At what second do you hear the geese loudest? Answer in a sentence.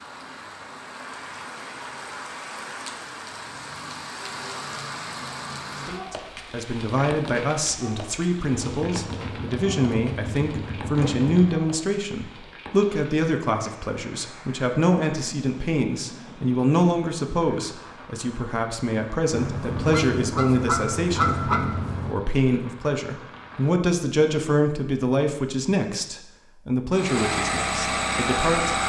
The loudest moment of the geese is at 21 seconds.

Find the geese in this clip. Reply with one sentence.
You can hear the geese from 19.3 to 22.1 s.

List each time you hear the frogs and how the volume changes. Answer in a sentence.
The frogs can't be heard in this clip.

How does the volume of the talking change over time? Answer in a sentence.
The volume of the talking stays about the same.